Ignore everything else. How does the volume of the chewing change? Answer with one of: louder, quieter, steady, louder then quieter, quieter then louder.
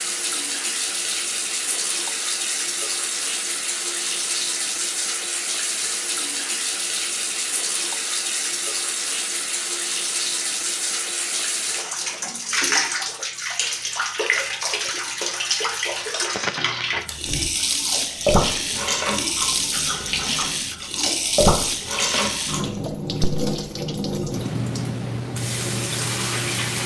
quieter then louder.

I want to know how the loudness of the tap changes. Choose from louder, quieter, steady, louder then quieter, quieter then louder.
steady.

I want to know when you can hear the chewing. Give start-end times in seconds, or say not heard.
17.1-22.8.